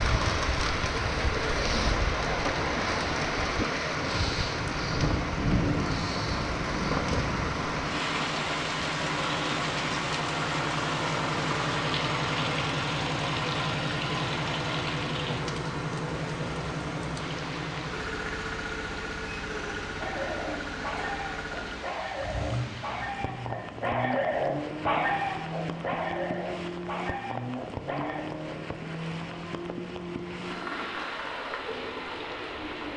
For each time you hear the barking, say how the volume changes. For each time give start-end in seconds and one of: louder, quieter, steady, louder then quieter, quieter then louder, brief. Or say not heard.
19.9-28.2 louder then quieter.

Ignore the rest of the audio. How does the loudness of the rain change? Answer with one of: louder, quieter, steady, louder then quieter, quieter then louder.
quieter.